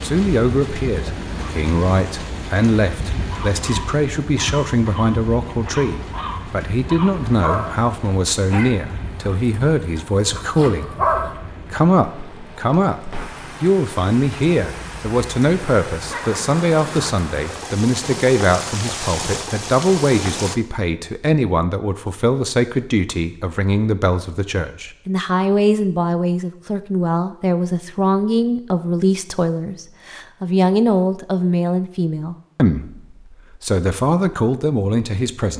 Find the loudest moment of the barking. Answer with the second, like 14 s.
11 s.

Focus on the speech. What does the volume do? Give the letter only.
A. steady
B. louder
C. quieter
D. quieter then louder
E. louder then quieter
A.